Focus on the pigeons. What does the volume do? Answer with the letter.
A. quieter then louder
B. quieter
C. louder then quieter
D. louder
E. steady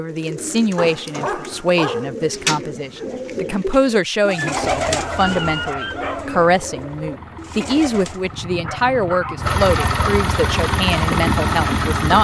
C.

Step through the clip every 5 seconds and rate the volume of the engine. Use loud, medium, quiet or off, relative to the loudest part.
off, medium, loud.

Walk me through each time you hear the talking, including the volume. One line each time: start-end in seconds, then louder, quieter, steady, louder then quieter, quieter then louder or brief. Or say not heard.
0.0-12.2 steady.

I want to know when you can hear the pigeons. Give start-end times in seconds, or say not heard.
0.0-8.3.